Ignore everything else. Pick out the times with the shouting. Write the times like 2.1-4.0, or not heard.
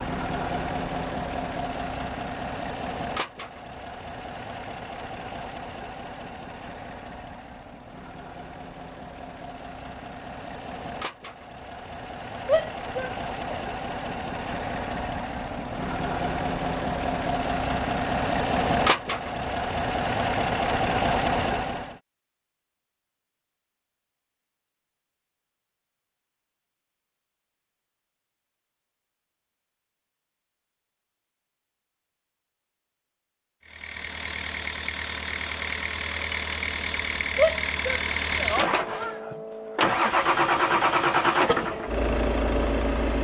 12.4-13.7, 37.4-39.2.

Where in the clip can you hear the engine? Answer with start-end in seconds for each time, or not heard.
0.0-22.0, 33.6-43.1.